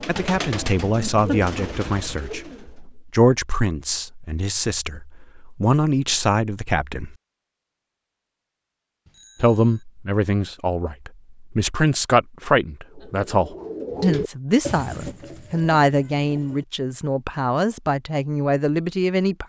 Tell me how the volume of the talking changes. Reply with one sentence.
The loudness of the talking stays about the same.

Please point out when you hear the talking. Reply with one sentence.
The talking can be heard from 0.1 to 7.2 s and from 9.4 to 19.4 s.